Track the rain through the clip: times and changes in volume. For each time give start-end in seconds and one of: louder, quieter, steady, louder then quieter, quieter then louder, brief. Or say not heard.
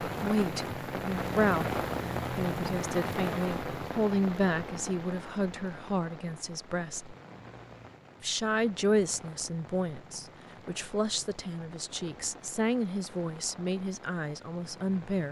0.0-15.2 quieter.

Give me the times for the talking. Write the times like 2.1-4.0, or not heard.
0.1-7.2, 8.2-15.2.